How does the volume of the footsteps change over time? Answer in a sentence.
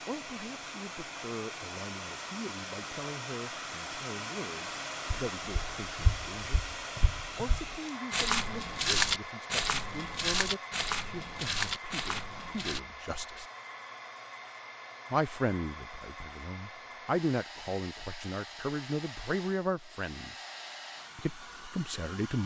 The loudness of the footsteps goes up, then down.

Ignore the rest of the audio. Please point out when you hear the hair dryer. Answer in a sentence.
You can hear the hair dryer from 0.0 to 22.4 s.